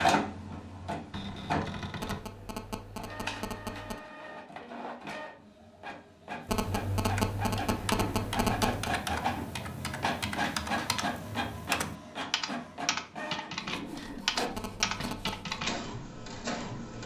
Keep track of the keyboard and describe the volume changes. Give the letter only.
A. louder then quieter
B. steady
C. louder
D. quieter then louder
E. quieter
C.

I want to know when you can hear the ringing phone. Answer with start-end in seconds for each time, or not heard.
2.0-4.0, 6.5-8.9, 14.5-15.6.